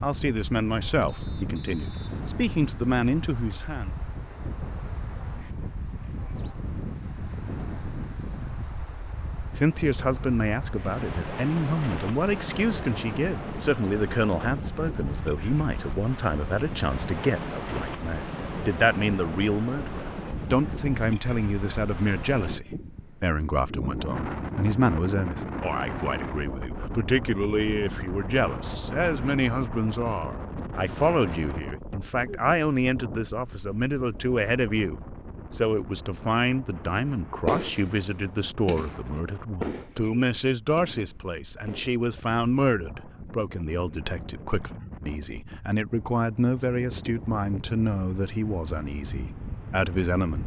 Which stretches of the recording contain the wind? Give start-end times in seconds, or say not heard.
0.0-50.4.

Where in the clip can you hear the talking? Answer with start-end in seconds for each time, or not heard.
0.0-3.9, 9.5-50.4.